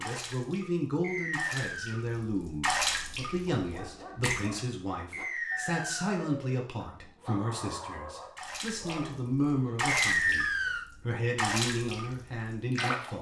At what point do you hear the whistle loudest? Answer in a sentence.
The volume of the whistle peaks at 10 seconds.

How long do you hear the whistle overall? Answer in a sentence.
The whistle can be heard for 3 seconds in total.